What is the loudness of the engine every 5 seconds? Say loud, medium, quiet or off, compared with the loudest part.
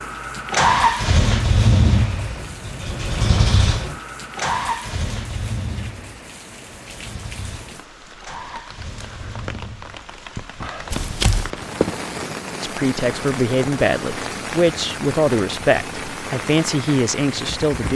loud, quiet, quiet, quiet.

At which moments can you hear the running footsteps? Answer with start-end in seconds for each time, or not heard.
10.9-12.3.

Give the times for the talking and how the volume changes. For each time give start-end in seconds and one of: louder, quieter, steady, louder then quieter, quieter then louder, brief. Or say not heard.
12.6-17.9 steady.